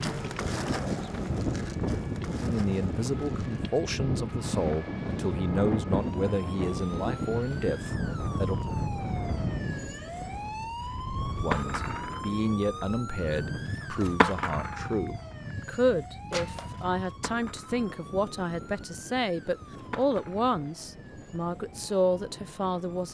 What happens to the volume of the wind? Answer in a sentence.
The volume of the wind goes down.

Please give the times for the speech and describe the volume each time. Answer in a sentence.
You can hear the speech from 2.4 to 8.6 s, at a steady volume; and from 11.3 to 23.0 s, at a steady volume.